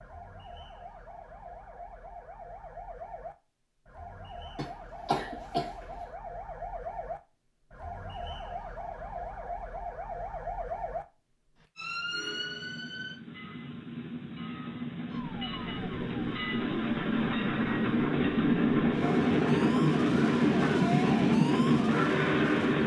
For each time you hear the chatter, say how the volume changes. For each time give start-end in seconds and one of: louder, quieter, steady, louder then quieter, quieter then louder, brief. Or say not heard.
not heard.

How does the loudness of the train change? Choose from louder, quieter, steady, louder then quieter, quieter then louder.
louder.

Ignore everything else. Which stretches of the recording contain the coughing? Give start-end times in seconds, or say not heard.
4.5-6.0.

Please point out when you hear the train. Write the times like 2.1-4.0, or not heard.
12.1-22.8.